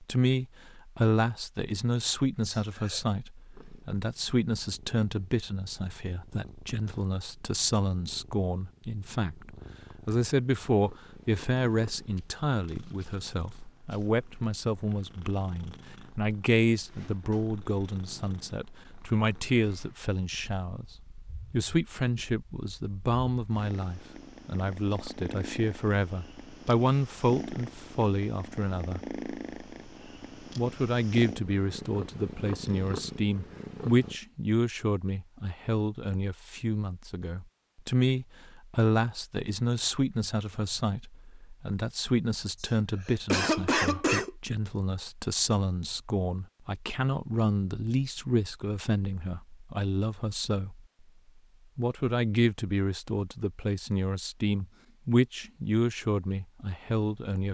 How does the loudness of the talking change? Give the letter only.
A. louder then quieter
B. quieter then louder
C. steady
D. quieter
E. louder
C.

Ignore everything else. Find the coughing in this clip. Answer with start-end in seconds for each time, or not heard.
2.4-3.0, 42.6-44.3.